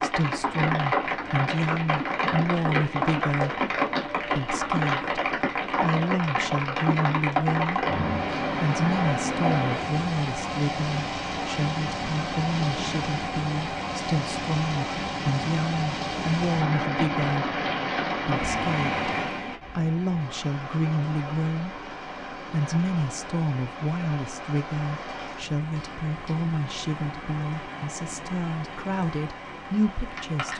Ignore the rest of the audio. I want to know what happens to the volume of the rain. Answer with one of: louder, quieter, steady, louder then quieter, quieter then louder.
quieter.